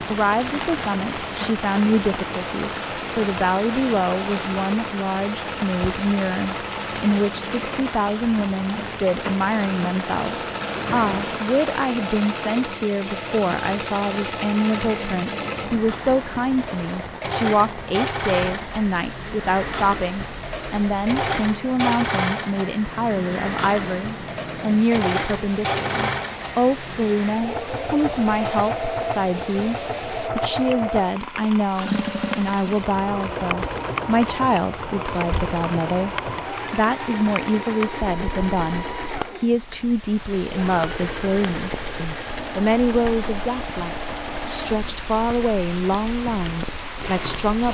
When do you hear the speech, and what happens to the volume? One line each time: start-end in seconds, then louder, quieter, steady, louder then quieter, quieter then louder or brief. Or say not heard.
0.1-47.6 steady.